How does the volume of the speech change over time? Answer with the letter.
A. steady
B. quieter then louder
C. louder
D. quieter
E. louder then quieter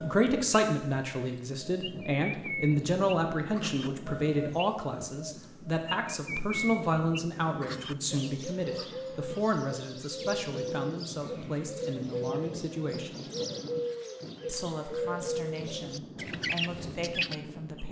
D.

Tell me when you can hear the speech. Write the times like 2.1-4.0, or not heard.
0.0-13.2, 14.4-17.8.